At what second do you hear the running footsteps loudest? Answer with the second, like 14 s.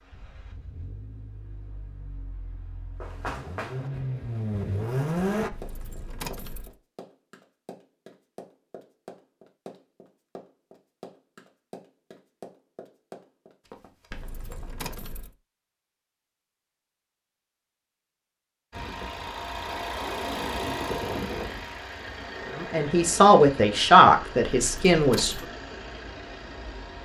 3 s.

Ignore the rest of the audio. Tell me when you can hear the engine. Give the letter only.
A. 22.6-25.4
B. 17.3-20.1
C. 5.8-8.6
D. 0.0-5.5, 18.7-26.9
D.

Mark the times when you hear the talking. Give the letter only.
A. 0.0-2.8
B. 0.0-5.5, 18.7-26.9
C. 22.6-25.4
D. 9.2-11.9
C.